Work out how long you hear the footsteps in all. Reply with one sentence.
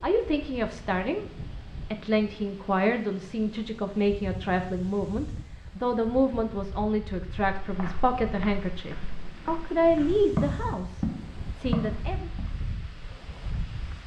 You can hear the footsteps for 5 seconds altogether.